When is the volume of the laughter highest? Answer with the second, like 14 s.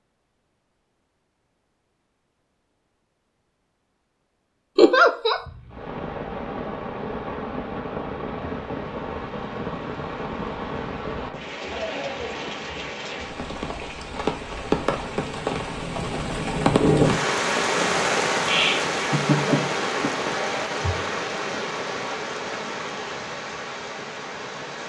5 s.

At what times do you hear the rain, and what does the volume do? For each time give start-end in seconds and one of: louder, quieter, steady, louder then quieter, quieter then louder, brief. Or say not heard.
5.5-24.8 louder then quieter.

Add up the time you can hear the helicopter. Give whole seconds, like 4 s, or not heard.
not heard.